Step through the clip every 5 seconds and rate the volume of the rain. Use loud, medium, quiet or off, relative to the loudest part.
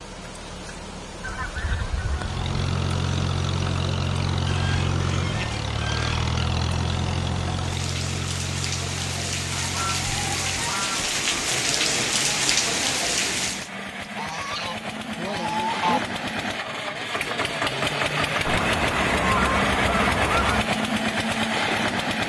quiet, medium, loud, off, off.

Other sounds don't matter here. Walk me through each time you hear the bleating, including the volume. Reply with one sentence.
The bleating can't be heard in this clip.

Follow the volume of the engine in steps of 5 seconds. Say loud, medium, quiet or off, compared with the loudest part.
loud, medium, medium, loud, loud.